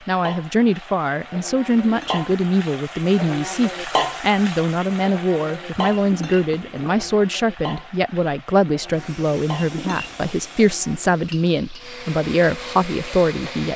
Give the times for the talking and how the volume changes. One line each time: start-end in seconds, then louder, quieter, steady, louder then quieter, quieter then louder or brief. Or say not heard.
0.1-13.7 steady.